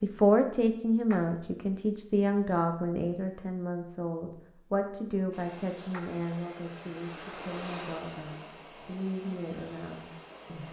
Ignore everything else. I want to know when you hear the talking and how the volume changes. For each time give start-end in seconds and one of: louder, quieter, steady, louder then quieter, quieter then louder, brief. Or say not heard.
0.0-10.6 quieter.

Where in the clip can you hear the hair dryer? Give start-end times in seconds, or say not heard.
5.3-10.6.